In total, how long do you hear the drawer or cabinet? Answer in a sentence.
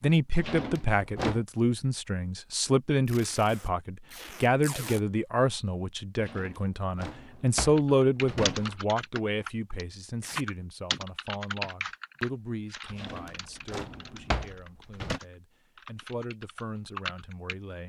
The drawer or cabinet can be heard for 6 seconds in total.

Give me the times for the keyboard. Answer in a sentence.
The keyboard can be heard from 7.8 to 17.6 s.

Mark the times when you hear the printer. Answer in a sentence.
You can't hear the printer here.